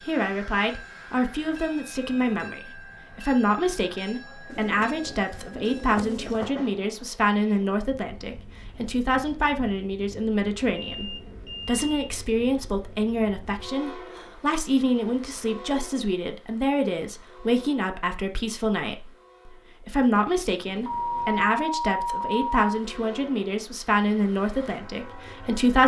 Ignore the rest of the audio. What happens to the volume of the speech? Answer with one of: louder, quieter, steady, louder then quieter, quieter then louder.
steady.